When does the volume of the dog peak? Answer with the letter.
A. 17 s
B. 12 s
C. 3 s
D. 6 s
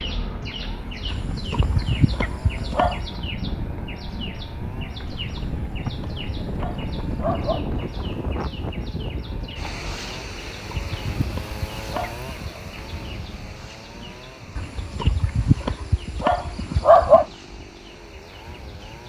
A.